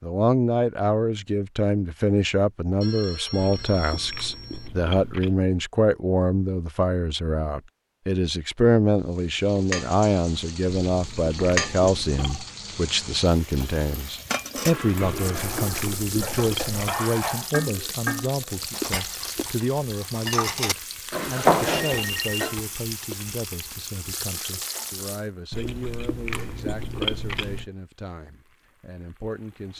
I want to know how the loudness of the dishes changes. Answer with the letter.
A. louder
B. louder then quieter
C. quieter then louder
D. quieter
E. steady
A.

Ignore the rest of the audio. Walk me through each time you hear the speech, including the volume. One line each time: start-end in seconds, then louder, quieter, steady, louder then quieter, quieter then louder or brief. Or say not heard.
0.0-29.7 quieter.